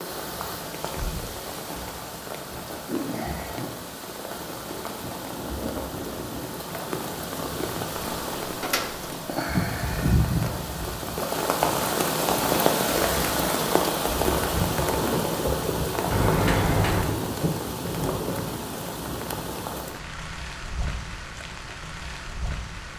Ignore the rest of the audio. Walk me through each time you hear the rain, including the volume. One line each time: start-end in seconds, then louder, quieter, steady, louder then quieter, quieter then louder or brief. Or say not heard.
0.0-22.9 louder then quieter.